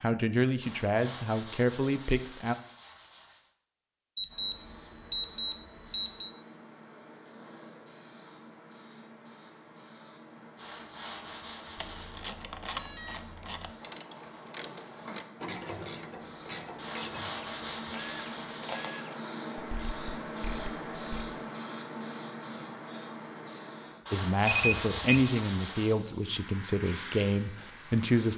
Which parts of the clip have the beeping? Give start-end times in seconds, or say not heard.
4.2-6.3, 12.6-13.4, 24.4-25.3.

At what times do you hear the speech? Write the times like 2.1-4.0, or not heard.
0.0-2.5, 24.1-28.3.